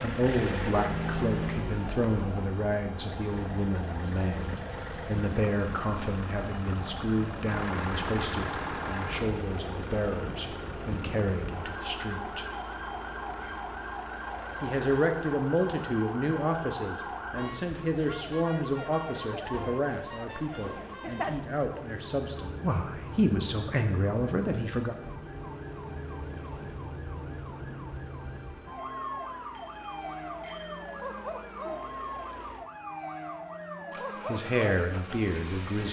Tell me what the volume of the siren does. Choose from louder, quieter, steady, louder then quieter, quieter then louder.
steady.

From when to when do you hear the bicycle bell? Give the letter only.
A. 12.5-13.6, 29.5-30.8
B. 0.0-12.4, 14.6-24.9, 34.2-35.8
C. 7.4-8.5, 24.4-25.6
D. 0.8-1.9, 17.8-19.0
A.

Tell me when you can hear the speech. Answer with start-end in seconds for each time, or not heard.
0.0-12.4, 14.6-24.9, 34.2-35.8.